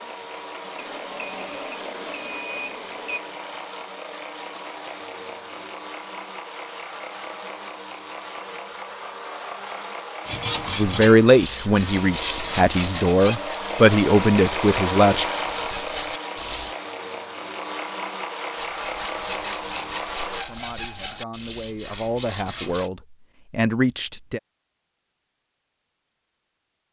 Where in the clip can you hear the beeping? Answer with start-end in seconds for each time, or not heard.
0.8-3.2.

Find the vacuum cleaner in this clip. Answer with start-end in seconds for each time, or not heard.
0.0-20.5.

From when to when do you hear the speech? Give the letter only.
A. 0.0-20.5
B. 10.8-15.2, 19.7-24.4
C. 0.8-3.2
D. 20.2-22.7
B.